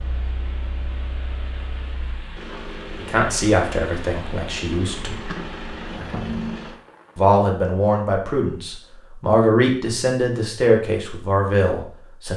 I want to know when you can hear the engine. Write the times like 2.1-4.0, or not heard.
0.0-6.8.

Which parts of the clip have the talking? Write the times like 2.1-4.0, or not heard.
3.0-5.3, 7.2-12.3.